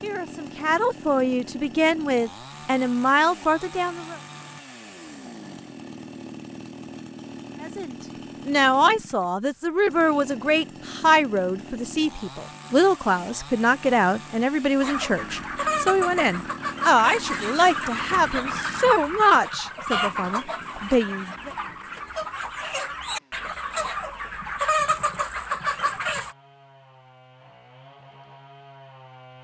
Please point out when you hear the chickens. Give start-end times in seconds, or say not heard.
14.8-26.4.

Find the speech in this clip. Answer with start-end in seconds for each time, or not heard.
0.0-4.2, 7.6-21.5.